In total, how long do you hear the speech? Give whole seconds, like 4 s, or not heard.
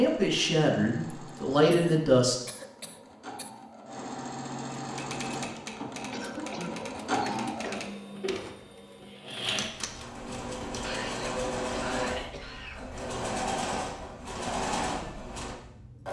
2 s.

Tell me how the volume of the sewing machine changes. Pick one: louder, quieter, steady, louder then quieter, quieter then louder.
louder.